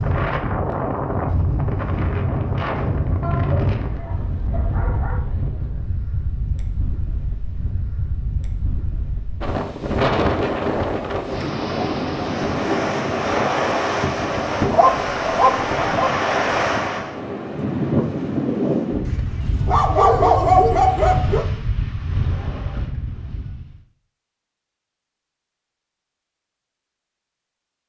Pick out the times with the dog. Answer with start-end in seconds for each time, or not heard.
3.2-5.2, 14.7-16.1, 19.1-21.4.